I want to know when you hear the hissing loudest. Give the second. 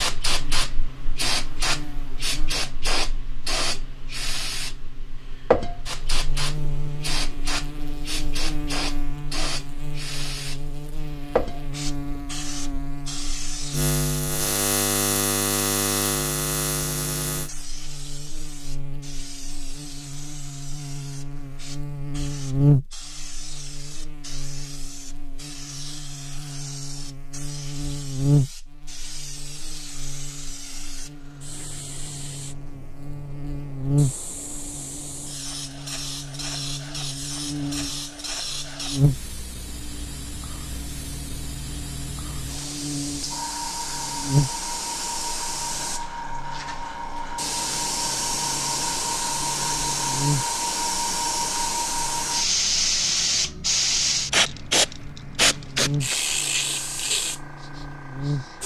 54 s.